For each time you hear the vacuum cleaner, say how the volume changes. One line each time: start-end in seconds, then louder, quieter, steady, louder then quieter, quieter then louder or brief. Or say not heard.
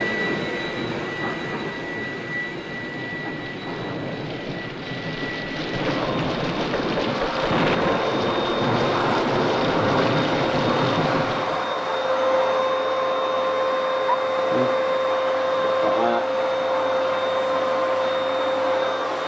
0.0-19.2 louder.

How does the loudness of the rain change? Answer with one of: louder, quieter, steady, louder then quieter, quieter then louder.
louder.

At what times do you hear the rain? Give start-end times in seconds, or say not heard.
0.0-11.7.